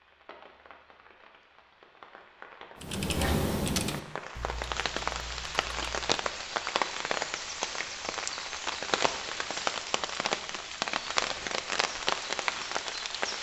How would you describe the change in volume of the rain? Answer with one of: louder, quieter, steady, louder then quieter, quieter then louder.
louder.